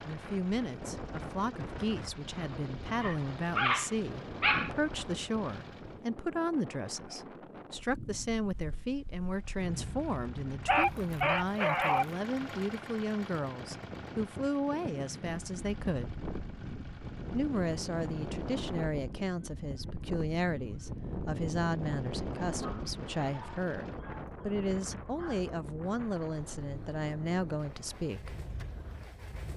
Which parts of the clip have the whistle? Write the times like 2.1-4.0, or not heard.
not heard.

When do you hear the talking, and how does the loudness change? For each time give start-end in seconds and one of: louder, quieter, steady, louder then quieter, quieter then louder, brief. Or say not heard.
0.0-16.1 steady
17.3-28.4 steady.